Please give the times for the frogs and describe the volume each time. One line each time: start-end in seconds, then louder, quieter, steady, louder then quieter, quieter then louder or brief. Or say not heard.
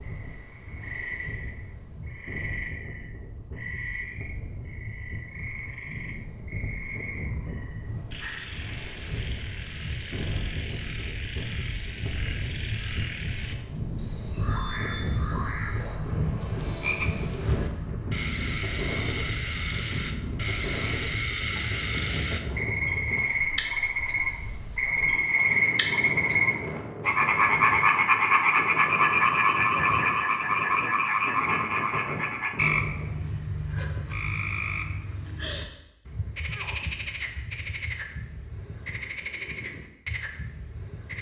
0.0-41.1 louder then quieter.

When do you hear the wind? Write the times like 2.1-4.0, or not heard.
0.0-33.3.